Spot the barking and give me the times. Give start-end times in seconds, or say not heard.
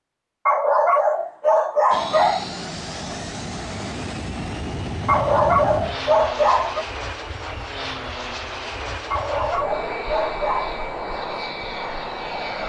0.5-2.5, 5.0-6.8, 9.1-10.8.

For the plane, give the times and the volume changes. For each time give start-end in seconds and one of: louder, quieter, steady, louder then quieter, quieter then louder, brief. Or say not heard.
1.9-12.6 steady.